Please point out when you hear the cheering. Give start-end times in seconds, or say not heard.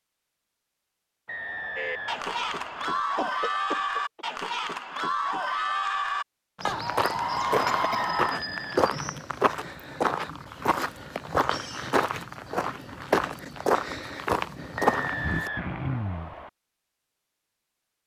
1.8-8.4.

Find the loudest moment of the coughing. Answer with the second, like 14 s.
16 s.